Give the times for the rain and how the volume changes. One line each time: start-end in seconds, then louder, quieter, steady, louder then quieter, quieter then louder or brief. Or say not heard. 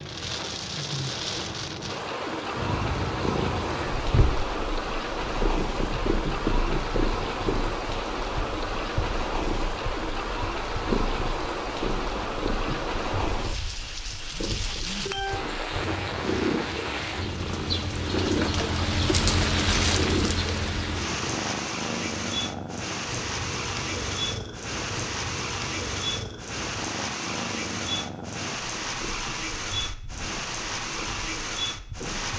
0.0-32.3 steady.